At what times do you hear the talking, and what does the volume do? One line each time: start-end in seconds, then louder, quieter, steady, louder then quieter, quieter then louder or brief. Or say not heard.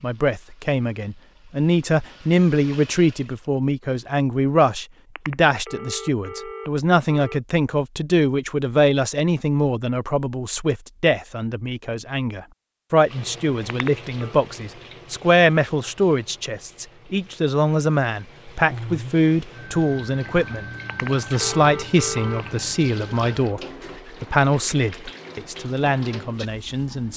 0.0-23.6 steady
24.2-27.1 brief.